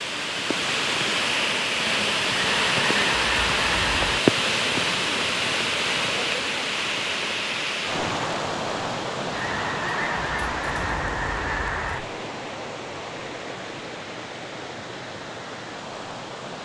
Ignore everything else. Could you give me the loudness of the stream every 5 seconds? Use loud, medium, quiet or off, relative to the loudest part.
loud, loud, medium, quiet.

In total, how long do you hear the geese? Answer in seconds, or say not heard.
5 s.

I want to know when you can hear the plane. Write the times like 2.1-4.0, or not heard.
not heard.